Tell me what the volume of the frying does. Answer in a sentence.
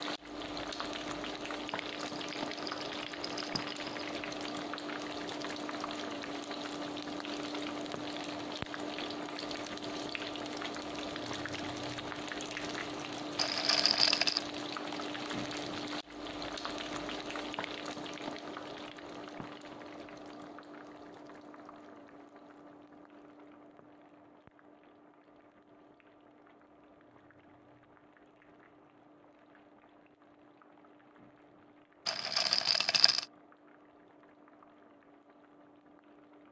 The volume of the frying goes down.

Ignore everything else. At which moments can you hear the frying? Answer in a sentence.
The frying can be heard from 0.0 to 36.4 s.